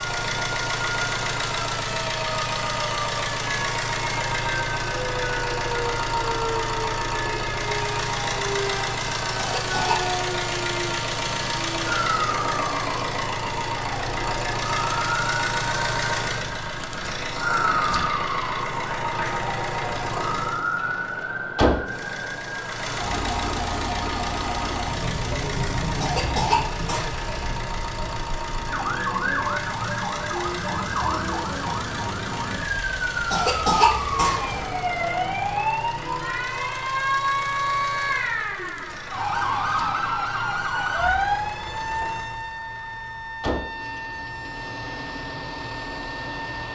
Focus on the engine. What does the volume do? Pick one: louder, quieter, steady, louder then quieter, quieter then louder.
quieter.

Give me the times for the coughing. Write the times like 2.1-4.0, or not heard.
9.3-10.2, 26.0-27.2, 33.3-34.6.